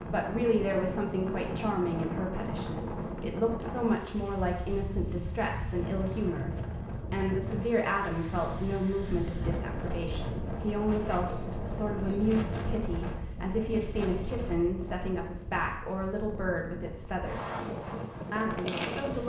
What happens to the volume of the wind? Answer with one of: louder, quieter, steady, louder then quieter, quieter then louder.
steady.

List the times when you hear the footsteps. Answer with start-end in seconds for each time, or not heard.
not heard.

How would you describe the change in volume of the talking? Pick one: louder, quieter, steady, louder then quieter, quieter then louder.
steady.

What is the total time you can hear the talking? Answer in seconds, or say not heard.
19 s.